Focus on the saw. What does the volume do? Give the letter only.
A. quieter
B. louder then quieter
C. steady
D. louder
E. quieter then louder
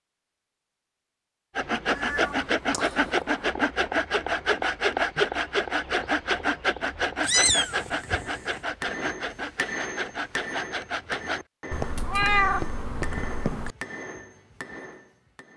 A.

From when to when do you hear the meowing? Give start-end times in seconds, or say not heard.
1.9-3.5, 7.2-8.6, 11.7-13.8.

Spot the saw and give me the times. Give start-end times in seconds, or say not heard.
1.6-11.4.